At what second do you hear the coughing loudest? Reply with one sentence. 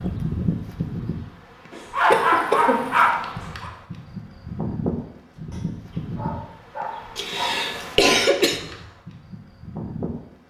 The loudest moment of the coughing is at 8 seconds.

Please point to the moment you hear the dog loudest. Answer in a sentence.
The volume of the dog peaks at 2 seconds.